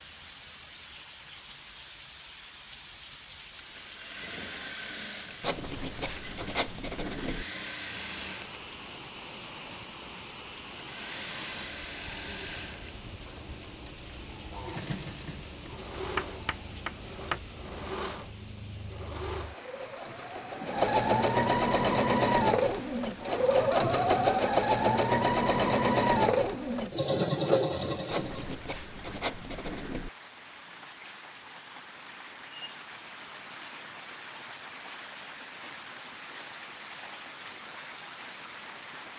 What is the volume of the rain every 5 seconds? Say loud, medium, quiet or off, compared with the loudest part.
loud, loud, loud, loud, loud, medium, loud, loud.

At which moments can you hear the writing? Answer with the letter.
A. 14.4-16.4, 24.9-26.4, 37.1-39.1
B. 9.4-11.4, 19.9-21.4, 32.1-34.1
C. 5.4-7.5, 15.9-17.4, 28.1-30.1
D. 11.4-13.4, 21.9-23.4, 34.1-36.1
C.